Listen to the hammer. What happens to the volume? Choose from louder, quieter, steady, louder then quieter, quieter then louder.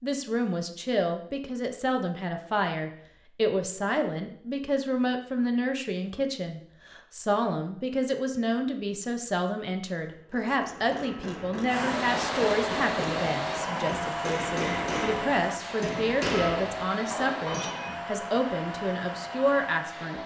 louder.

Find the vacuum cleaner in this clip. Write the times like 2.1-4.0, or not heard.
11.7-20.2.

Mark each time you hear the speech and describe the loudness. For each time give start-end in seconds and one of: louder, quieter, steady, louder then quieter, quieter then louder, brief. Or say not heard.
0.0-20.2 steady.